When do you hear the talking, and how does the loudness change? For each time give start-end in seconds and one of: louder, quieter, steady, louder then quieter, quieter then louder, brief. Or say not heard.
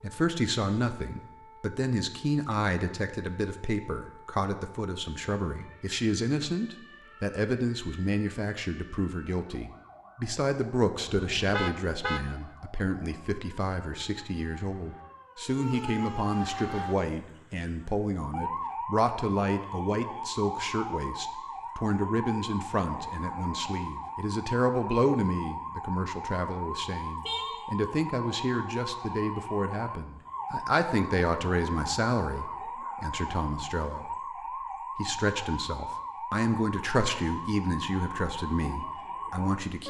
0.0-34.1 steady
35.0-39.8 louder then quieter.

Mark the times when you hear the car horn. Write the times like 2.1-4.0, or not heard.
11.2-12.2, 27.2-27.7.